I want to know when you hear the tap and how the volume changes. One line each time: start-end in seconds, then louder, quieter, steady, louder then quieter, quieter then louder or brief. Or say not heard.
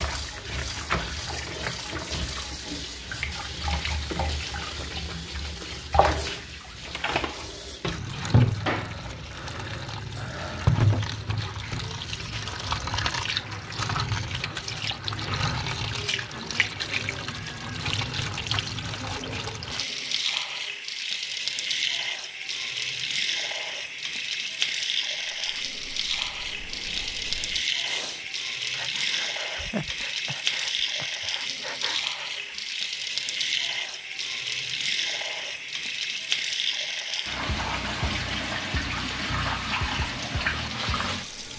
0.0-41.5 steady.